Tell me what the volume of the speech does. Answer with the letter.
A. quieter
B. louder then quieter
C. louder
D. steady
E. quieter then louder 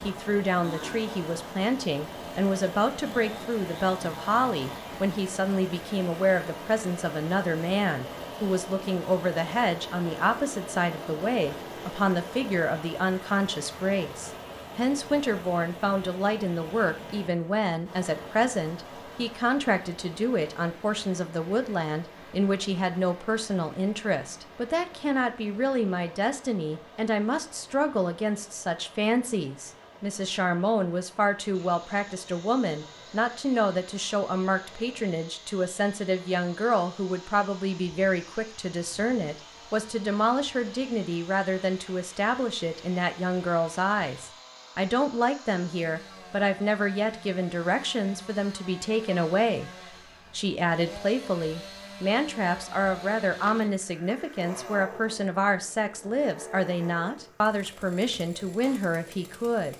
D.